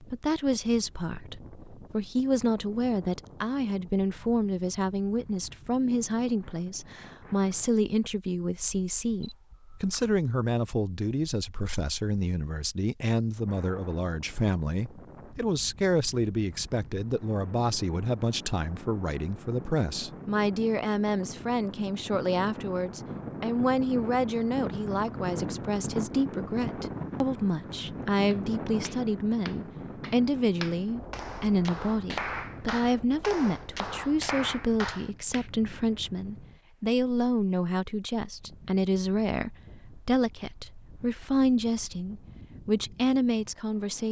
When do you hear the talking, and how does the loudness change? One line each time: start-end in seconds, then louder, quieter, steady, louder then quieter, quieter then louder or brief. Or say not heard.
0.0-44.0 steady.